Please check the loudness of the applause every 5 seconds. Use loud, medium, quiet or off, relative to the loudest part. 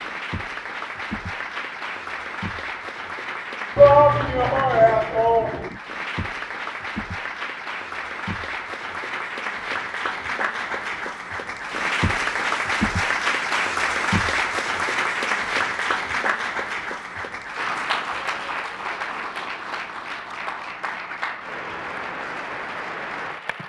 medium, medium, loud, loud, medium.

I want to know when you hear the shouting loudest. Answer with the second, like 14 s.
4 s.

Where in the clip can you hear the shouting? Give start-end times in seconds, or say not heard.
3.8-5.8.